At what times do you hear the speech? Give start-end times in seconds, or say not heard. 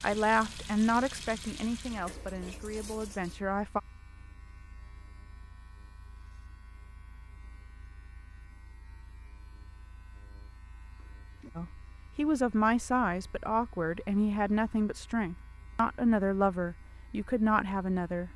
0.0-3.8, 11.6-18.3.